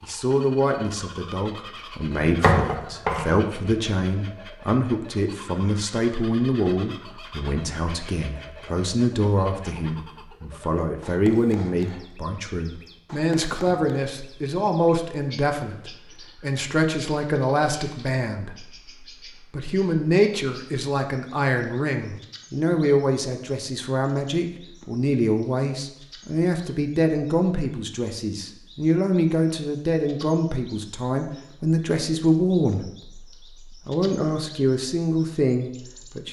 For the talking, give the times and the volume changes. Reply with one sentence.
You can hear the talking from 0.0 to 36.2 s, at a steady volume.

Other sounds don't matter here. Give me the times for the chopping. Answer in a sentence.
The chopping can be heard from 2.1 to 3.5 s.